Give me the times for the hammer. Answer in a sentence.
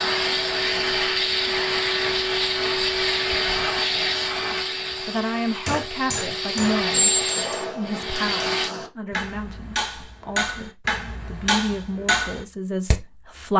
The hammer can be heard from 5.7 to 12.9 s.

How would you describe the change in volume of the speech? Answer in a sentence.
The loudness of the speech goes down, then up.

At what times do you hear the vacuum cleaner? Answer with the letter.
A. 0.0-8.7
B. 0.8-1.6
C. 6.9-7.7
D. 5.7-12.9
A.